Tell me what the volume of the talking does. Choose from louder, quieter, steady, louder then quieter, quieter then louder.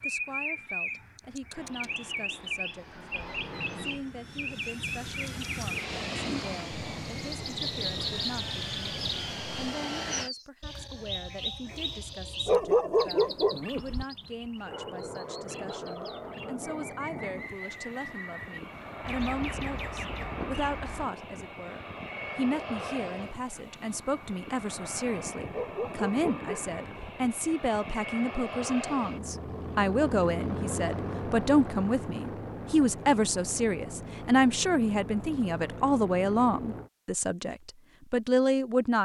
louder.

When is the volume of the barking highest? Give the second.
13 s.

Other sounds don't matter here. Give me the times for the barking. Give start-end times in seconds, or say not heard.
12.4-14.1, 25.5-27.1.